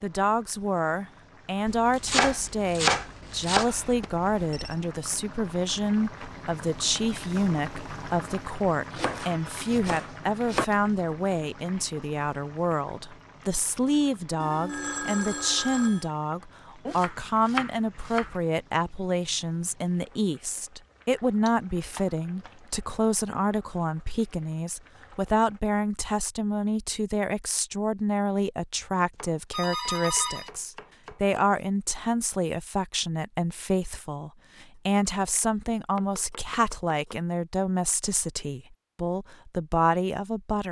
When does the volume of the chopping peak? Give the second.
3 s.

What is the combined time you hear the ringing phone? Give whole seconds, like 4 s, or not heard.
4 s.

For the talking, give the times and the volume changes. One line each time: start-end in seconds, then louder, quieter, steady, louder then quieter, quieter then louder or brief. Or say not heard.
0.0-40.6 steady.